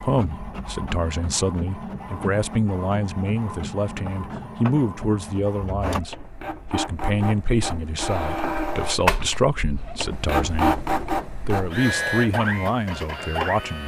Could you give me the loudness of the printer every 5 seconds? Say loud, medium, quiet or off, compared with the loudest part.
medium, loud, loud.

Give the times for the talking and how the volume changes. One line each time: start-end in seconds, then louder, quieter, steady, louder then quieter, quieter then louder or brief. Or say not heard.
0.0-13.8 steady.